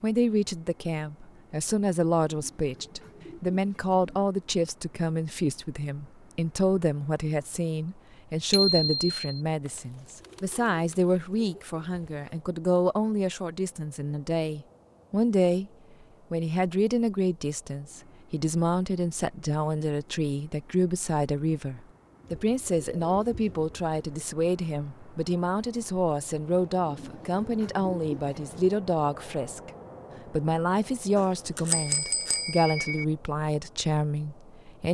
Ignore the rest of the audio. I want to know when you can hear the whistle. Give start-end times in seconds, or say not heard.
not heard.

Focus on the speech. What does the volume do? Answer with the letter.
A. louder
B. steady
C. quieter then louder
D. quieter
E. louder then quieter
B.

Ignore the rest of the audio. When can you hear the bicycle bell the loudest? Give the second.
9 s.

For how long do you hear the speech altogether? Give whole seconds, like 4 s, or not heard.
34 s.